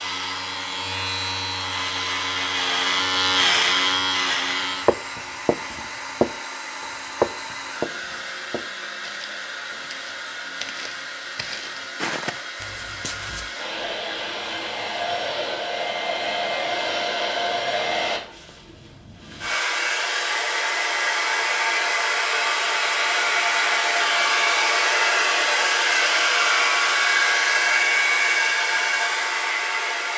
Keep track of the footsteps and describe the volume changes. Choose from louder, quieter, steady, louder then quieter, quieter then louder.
quieter then louder.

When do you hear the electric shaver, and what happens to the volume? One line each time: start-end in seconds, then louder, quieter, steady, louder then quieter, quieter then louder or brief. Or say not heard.
0.0-5.0 louder.